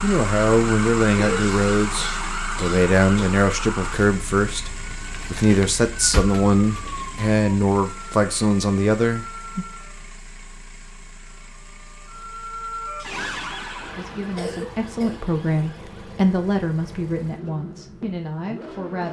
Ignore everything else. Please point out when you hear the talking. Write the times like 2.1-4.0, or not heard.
0.0-9.7, 13.9-19.0.